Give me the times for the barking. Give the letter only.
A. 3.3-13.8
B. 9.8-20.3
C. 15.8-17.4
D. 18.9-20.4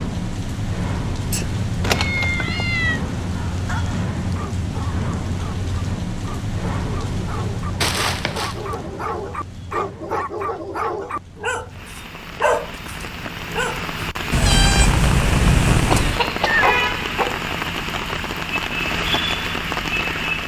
A.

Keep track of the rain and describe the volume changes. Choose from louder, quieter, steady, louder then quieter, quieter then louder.
quieter then louder.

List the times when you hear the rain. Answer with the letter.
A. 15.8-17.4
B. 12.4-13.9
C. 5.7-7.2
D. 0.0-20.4
D.